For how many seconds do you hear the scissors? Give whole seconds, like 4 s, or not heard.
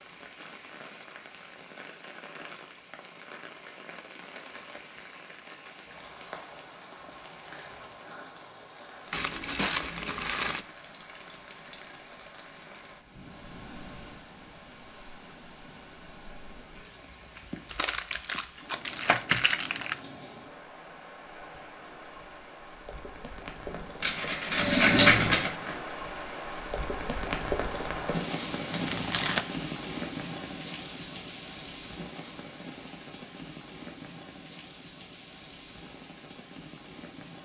2 s.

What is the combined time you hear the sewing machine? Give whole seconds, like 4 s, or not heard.
2 s.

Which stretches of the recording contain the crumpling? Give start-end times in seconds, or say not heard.
9.1-10.7, 17.7-19.9, 28.7-29.4.